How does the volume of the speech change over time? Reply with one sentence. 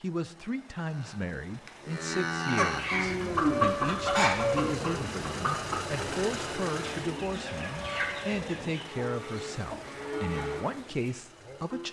The loudness of the speech stays about the same.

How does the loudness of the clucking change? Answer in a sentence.
The volume of the clucking goes down.